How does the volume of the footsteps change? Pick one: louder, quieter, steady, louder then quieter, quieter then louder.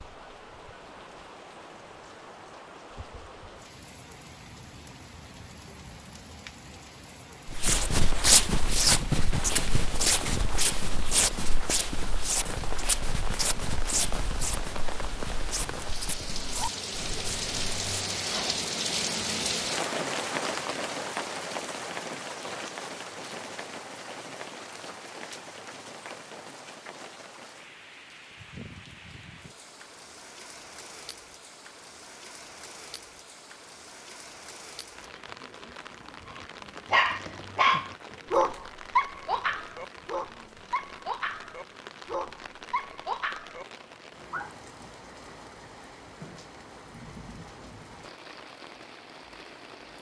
quieter.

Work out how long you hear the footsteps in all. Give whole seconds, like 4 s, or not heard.
10 s.